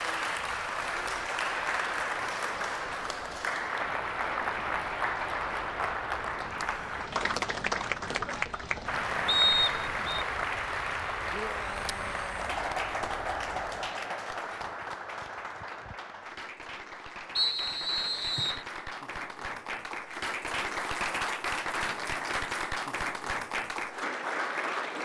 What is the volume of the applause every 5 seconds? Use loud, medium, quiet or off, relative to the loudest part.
loud, loud, loud, medium, loud.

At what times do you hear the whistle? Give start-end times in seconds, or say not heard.
9.2-10.2, 17.4-18.6.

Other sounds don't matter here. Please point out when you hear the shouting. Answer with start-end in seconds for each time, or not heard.
11.3-12.6.